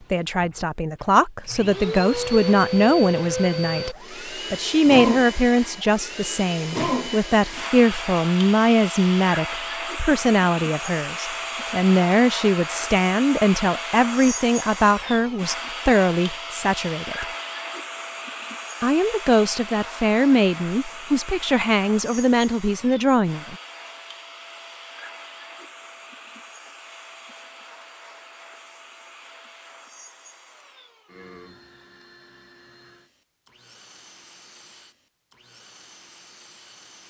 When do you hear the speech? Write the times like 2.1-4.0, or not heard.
0.1-17.2, 18.8-23.6.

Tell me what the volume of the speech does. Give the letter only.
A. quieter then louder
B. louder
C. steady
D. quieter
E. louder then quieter
C.